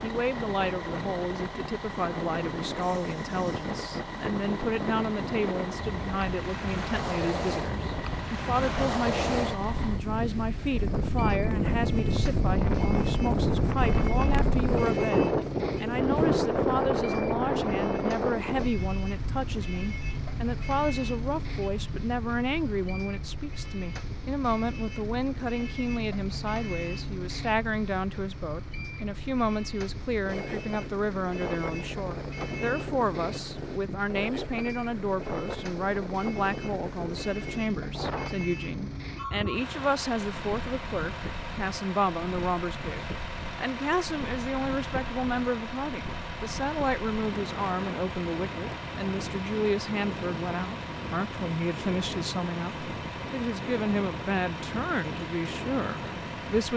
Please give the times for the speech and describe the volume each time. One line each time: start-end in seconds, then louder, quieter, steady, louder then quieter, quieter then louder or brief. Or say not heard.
0.0-56.7 steady.